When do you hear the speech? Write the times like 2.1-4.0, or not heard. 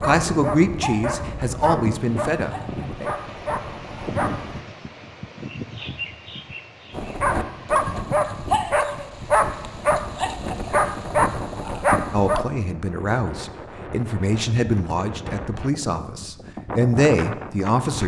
0.0-3.0, 12.1-18.0.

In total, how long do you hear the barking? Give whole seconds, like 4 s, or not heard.
10 s.